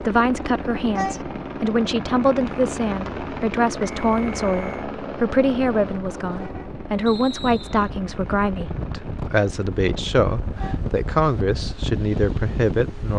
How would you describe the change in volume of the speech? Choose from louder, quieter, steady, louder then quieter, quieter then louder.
steady.